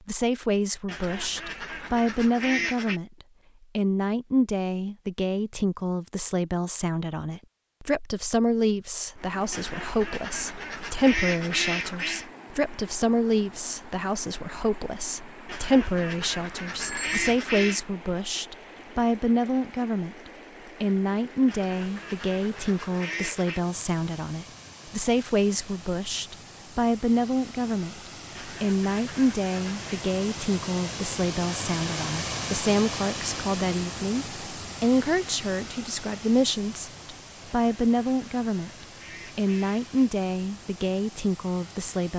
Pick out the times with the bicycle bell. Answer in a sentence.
You can hear the bicycle bell from 16.8 to 17.4 s.